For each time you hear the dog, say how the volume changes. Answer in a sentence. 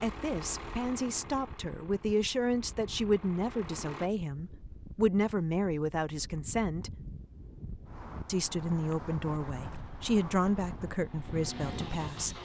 The dog can't be heard in this clip.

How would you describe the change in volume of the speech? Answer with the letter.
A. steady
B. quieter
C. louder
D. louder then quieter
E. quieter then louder
A.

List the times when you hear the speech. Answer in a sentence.
You can hear the speech from 0.0 to 6.9 s and from 8.2 to 12.3 s.